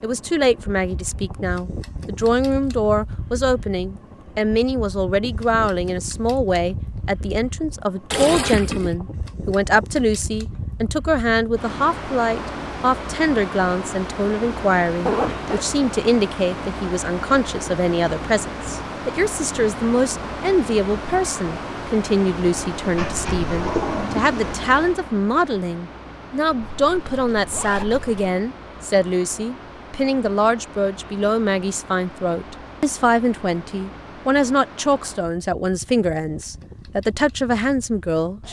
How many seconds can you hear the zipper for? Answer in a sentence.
You can hear the zipper for 2 seconds altogether.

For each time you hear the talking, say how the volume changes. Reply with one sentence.
You can hear the talking from 0.0 to 38.4 s, at a steady volume.